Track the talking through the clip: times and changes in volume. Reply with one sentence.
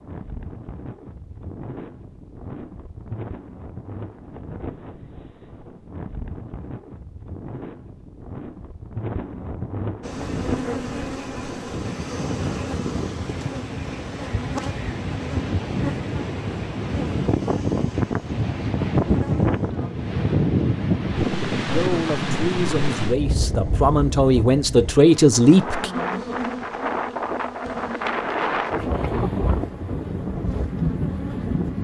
You can hear the talking from 21.7 to 25.9 s, getting louder.